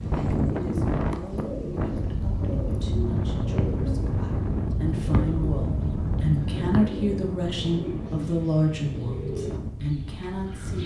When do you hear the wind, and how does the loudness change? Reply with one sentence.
You can hear the wind from 0.0 to 10.8 s, getting quieter.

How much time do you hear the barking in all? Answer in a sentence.
The barking can't be heard in this clip.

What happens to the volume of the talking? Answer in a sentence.
The volume of the talking goes up.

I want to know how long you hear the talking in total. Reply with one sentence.
You can hear the talking for 11 seconds altogether.